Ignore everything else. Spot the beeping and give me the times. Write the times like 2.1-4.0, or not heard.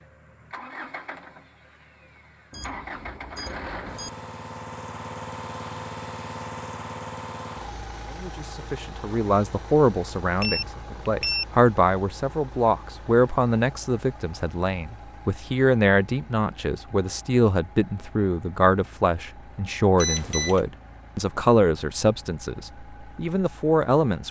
2.5-4.1, 10.4-11.6, 19.9-20.6.